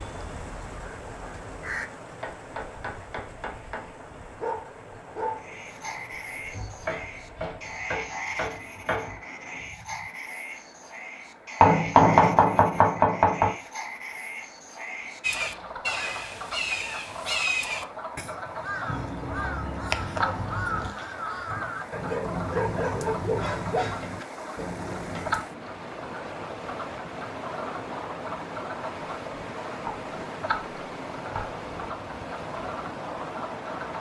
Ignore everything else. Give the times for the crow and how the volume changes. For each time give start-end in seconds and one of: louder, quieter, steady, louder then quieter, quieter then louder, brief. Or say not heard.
0.0-1.9 brief
15.2-25.4 quieter.